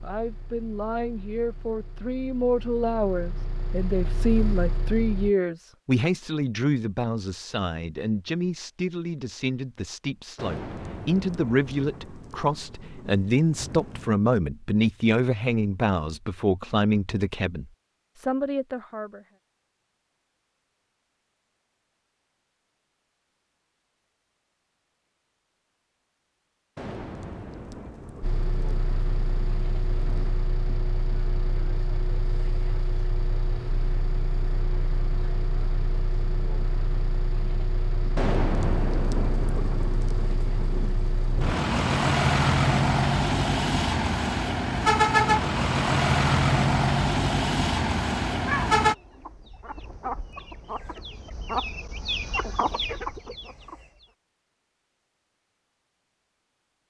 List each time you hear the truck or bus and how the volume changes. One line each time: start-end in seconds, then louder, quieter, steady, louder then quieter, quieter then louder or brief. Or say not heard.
0.0-5.3 louder
28.2-49.0 louder.